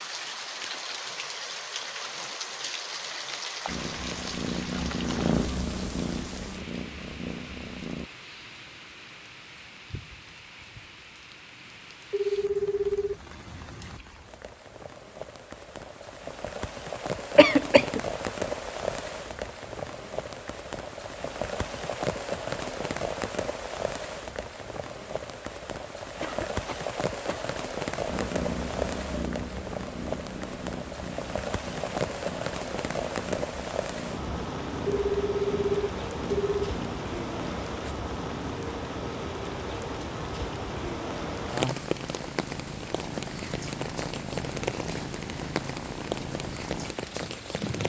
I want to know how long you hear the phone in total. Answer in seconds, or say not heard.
3 s.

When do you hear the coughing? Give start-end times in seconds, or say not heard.
17.4-18.0, 26.2-27.5.